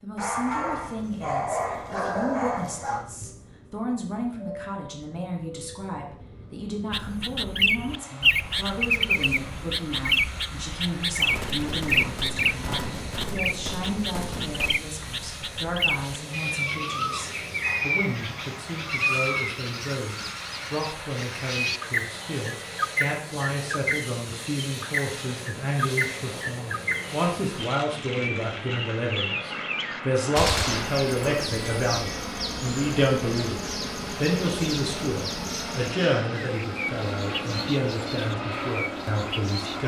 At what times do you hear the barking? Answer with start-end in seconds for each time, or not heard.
0.1-3.0.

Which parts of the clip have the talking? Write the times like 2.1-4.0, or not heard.
0.0-39.8.